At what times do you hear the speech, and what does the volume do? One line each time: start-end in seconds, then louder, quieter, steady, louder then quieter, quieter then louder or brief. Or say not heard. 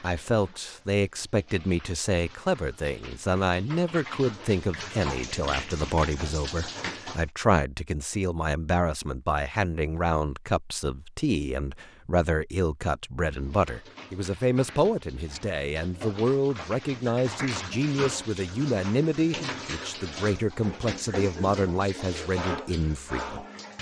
0.0-23.4 steady.